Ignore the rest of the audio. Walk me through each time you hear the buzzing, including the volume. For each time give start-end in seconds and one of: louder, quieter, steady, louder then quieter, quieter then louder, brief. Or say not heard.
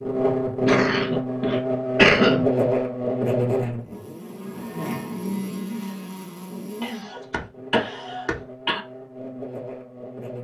0.0-10.3 quieter.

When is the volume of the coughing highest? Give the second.
2 s.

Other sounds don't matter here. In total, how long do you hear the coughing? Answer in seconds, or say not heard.
4 s.